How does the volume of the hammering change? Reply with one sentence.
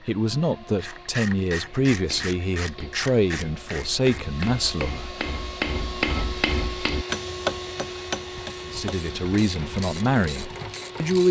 The loudness of the hammering goes up, then down.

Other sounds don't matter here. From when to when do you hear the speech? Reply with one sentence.
The speech can be heard from 0.1 to 5.2 s and from 8.7 to 11.2 s.